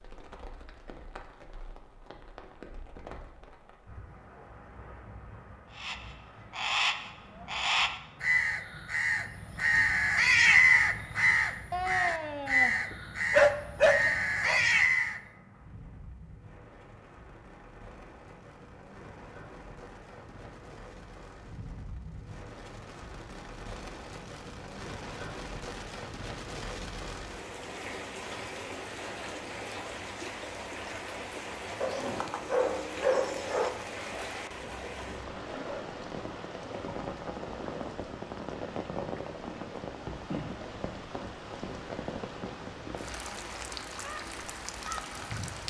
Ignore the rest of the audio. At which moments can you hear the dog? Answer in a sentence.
You can hear the dog from 11.7 to 14.6 s and from 31.8 to 33.7 s.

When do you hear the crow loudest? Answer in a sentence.
The loudest moment of the crow is at 11 seconds.